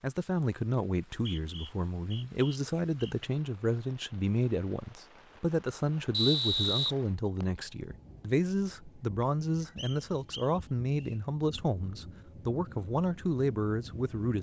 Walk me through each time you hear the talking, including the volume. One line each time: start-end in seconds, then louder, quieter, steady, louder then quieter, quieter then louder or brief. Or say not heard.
0.0-14.3 steady.